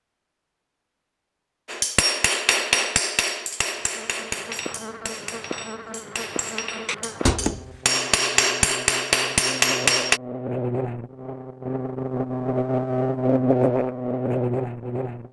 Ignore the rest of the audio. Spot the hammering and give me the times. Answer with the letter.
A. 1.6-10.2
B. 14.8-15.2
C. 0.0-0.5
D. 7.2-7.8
A.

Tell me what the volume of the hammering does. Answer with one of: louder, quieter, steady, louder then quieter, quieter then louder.
quieter then louder.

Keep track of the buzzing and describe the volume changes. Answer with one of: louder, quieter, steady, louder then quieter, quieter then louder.
louder.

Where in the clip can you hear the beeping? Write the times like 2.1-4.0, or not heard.
7.2-7.8.